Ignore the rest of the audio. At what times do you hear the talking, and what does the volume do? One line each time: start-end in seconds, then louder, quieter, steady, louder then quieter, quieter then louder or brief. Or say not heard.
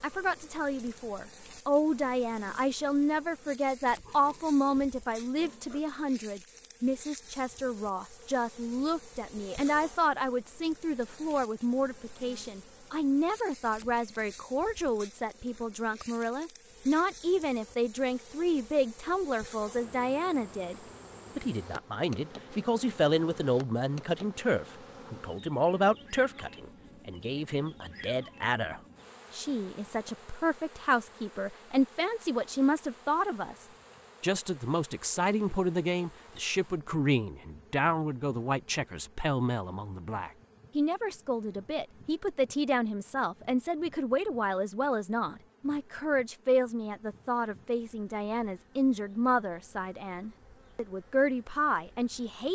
0.0-20.8 steady
21.4-52.4 steady.